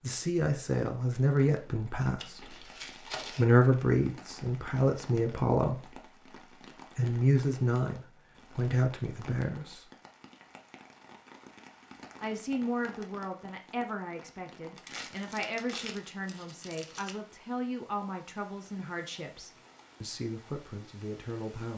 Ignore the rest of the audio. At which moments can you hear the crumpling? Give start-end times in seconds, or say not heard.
2.1-3.5, 14.8-17.1.